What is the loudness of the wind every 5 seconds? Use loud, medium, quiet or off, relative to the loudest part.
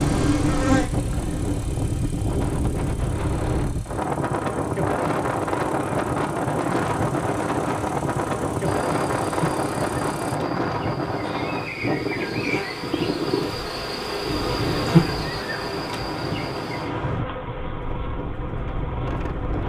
loud, loud, loud, medium.